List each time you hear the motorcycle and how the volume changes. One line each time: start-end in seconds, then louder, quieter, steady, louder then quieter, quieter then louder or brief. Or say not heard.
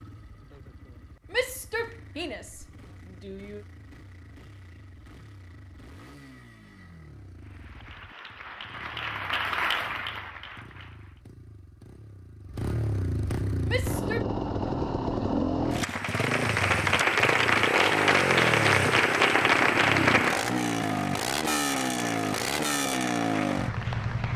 0.0-24.3 louder.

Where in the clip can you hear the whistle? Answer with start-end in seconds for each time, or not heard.
not heard.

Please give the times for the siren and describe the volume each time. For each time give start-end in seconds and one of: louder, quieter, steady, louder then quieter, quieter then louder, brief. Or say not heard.
not heard.